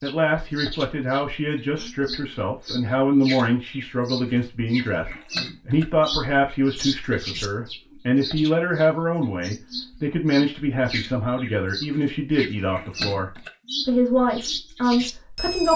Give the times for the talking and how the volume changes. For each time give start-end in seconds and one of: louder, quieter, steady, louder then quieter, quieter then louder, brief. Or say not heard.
0.0-15.7 steady.